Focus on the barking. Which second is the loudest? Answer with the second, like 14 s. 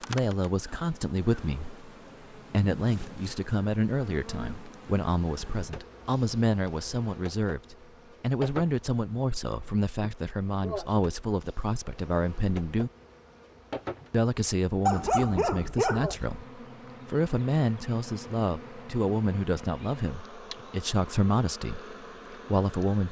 15 s.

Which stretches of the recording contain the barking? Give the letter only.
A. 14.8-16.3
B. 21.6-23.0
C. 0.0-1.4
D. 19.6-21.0
A.